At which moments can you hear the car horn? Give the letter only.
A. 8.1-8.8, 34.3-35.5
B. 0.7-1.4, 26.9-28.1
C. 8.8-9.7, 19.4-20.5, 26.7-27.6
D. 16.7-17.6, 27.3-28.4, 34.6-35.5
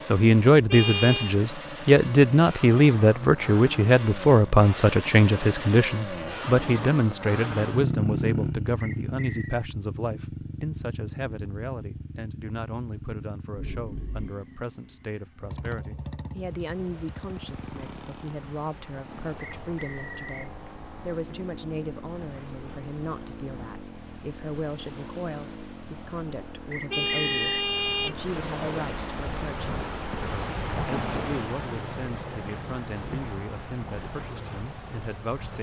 B.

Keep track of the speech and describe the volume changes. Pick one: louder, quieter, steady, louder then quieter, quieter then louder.
quieter.